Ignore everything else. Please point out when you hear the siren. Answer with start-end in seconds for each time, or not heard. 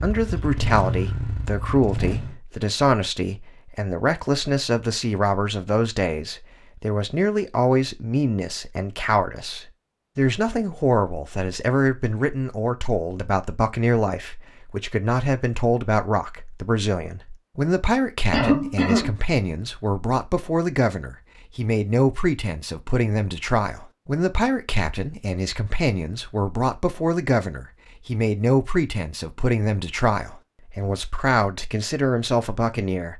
not heard.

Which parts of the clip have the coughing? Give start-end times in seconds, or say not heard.
18.3-19.1.